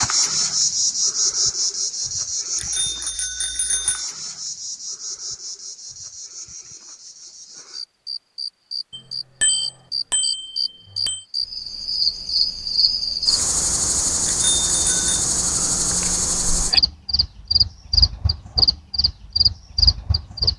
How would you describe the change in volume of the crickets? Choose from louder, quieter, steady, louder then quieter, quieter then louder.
quieter then louder.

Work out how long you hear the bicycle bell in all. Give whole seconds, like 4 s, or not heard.
5 s.